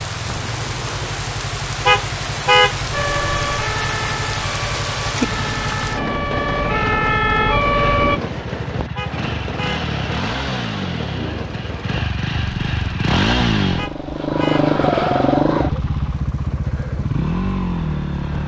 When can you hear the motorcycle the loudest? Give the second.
15 s.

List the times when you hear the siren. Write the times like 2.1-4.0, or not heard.
2.9-8.2.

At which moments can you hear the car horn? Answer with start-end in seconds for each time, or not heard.
1.9-2.8, 8.9-9.9, 13.8-14.7.